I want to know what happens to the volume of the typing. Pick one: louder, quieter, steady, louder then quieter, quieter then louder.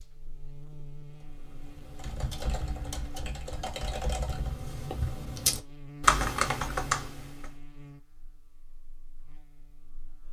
louder.